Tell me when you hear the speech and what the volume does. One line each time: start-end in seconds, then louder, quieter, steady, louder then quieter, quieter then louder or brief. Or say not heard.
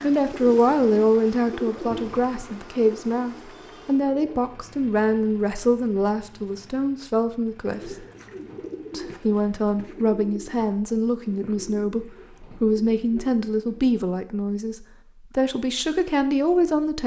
0.0-8.1 quieter
8.9-17.0 steady.